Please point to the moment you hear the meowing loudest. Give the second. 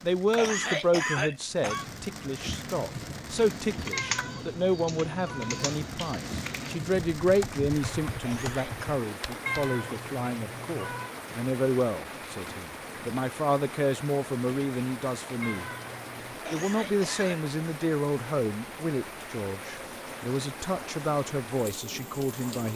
10 s.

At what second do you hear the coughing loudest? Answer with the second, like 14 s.
1 s.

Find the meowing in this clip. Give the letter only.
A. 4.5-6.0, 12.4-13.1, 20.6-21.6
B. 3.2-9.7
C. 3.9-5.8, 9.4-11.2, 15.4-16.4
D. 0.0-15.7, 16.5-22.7
C.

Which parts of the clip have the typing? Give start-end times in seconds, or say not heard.
3.2-9.7.